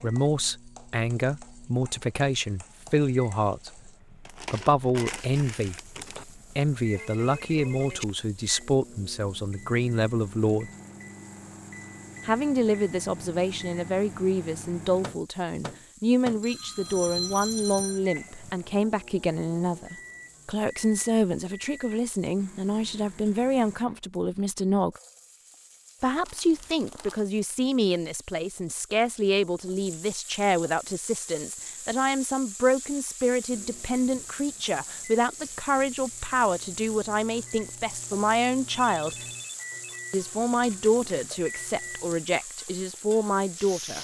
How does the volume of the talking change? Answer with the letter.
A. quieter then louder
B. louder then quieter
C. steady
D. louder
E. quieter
C.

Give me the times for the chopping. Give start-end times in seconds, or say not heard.
not heard.